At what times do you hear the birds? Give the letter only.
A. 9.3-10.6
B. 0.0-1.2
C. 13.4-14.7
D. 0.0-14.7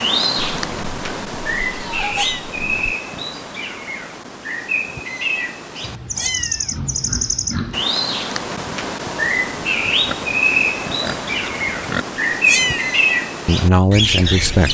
D.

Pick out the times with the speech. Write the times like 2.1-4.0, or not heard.
13.4-14.7.